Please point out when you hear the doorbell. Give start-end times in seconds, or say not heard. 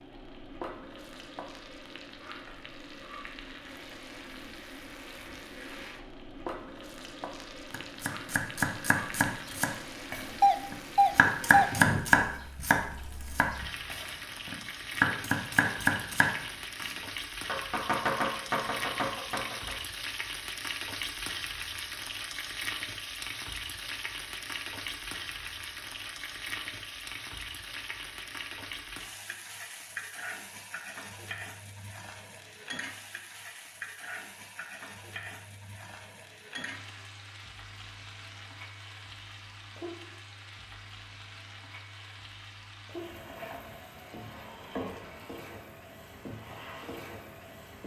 10.4-11.7.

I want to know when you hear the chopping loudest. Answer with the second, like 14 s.
12 s.